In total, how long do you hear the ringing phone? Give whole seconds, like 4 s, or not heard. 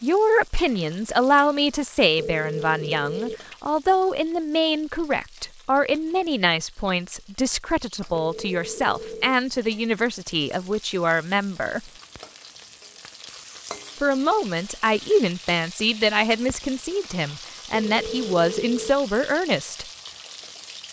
4 s.